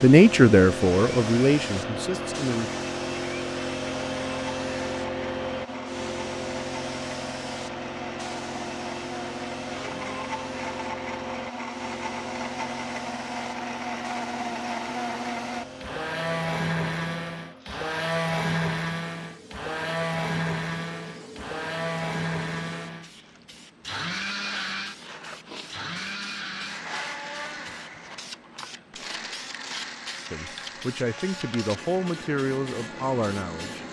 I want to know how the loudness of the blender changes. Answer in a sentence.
The volume of the blender goes up, then down.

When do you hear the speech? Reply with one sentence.
The speech can be heard from 0.0 to 2.7 s and from 30.3 to 33.8 s.